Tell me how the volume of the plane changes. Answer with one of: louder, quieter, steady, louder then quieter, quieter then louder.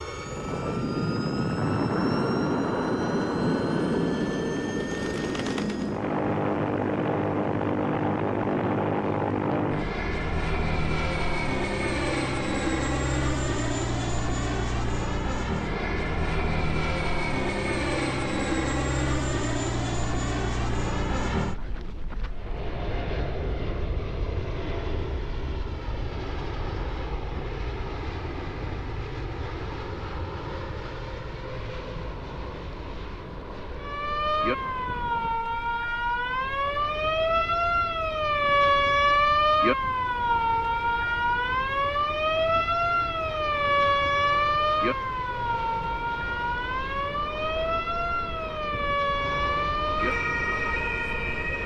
quieter.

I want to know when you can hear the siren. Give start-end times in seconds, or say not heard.
33.8-51.6.